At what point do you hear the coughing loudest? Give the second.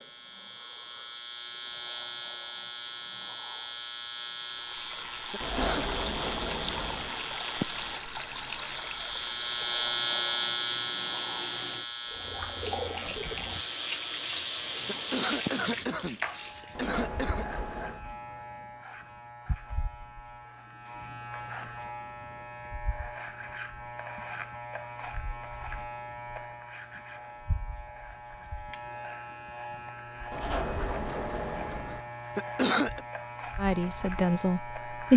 33 s.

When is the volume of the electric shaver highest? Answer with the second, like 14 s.
10 s.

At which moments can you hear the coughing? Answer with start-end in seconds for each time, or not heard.
5.3-6.0, 14.8-17.4, 32.4-33.0.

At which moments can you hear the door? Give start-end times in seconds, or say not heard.
5.4-7.1, 16.7-18.1, 30.3-32.0.